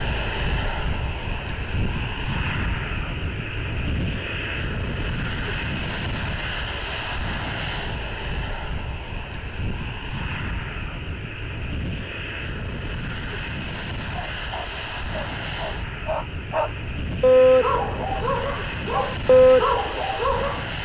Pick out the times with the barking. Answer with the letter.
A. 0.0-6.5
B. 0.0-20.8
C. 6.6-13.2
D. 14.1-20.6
D.